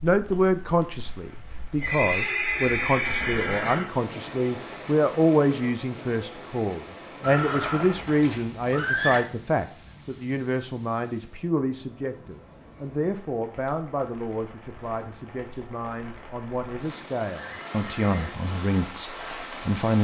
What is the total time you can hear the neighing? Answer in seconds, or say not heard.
5 s.